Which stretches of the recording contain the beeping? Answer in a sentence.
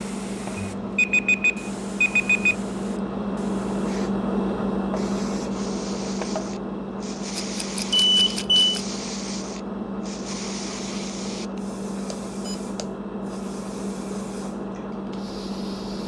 You can hear the beeping from 0.6 to 2.5 s, from 7.9 to 8.8 s and from 12.1 to 12.8 s.